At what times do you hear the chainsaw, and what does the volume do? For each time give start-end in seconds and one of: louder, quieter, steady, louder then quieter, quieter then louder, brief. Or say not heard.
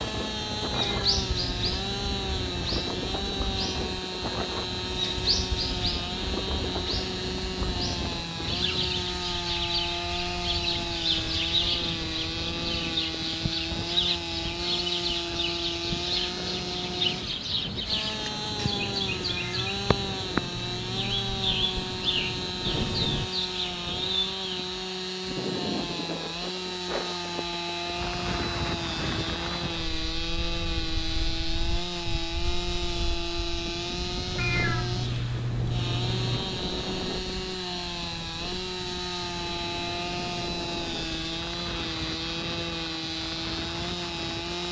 0.0-44.6 steady.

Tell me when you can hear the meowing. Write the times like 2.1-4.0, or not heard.
0.7-2.7, 19.2-19.9, 34.4-36.4.